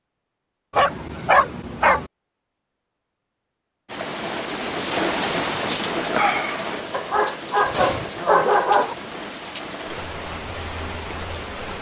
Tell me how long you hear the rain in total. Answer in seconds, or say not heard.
8 s.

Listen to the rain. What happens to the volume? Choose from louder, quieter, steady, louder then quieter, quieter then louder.
quieter.